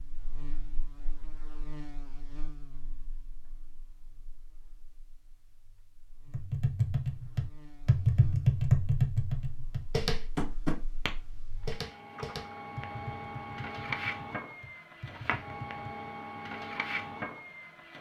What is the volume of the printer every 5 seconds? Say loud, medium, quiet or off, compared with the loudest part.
off, off, loud, loud.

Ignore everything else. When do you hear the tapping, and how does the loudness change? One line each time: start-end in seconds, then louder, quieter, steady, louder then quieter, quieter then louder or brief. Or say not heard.
6.3-16.1 quieter.